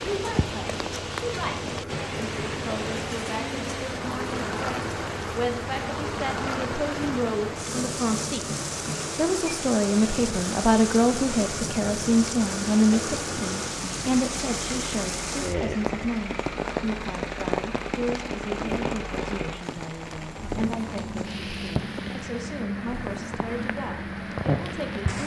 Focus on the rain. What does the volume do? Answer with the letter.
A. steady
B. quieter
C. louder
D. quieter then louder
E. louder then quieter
A.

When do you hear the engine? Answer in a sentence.
You can hear the engine from 0.0 to 25.2 s.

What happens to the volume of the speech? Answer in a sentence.
The volume of the speech goes up, then down.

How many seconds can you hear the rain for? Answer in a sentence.
You can hear the rain for 25 seconds altogether.